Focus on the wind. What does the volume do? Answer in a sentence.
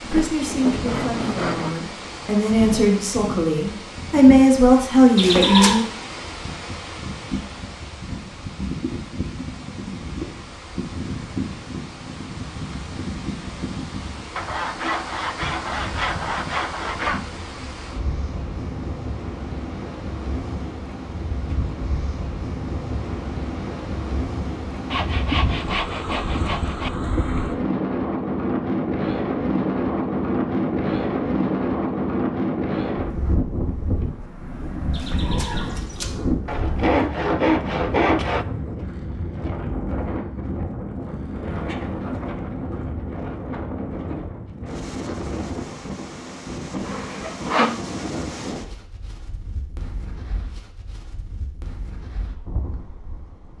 The volume of the wind goes up, then down.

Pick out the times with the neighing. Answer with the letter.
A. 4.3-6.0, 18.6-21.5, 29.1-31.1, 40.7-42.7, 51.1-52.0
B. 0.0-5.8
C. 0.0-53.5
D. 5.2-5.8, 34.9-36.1
D.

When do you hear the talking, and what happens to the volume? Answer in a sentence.
You can hear the talking from 0.0 to 5.8 s, getting louder.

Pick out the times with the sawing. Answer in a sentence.
You can hear the sawing from 0.1 to 1.8 s, from 14.3 to 17.2 s, from 24.9 to 26.9 s, from 36.5 to 38.5 s and from 46.9 to 47.8 s.